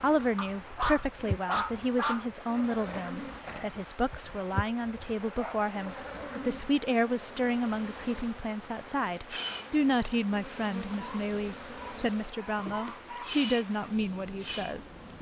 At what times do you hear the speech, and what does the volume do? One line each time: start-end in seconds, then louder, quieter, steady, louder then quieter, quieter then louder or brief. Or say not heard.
0.0-15.1 steady.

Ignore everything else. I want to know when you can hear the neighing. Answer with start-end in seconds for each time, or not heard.
2.9-3.8.